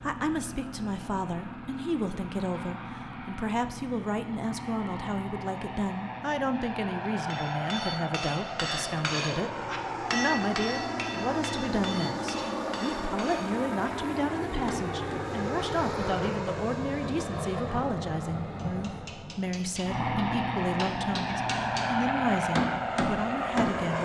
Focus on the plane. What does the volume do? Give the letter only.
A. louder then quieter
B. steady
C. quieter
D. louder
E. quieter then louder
D.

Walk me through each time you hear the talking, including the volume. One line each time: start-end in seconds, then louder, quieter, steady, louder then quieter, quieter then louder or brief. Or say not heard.
0.0-24.0 steady.